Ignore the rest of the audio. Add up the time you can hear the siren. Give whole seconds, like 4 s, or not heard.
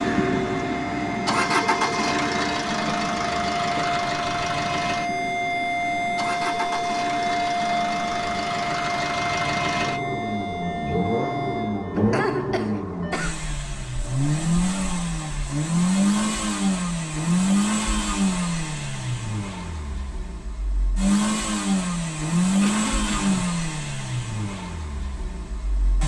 12 s.